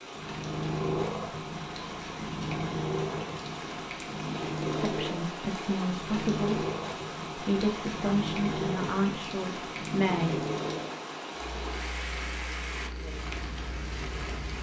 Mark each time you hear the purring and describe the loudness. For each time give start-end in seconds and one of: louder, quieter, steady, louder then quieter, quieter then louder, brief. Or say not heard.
0.1-14.5 quieter.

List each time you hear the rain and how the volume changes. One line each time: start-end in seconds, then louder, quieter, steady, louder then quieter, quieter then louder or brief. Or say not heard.
0.0-14.5 steady.